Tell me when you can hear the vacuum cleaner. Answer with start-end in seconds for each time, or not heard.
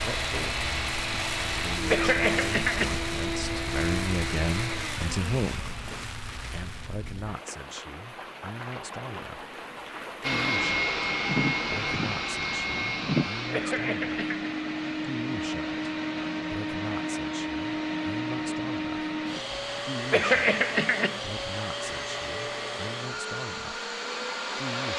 0.0-6.1, 10.2-24.9.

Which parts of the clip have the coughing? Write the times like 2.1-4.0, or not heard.
1.9-3.0, 13.5-14.5, 20.1-21.2.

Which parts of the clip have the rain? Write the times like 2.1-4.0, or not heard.
0.0-13.3.